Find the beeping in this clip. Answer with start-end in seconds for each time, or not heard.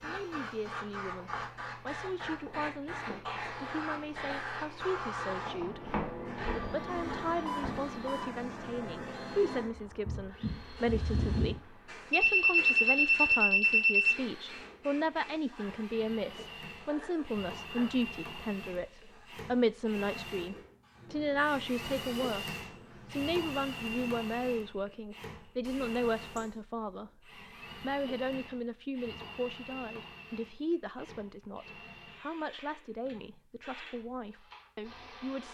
7.5-8.4, 12.1-14.2, 25.6-26.6.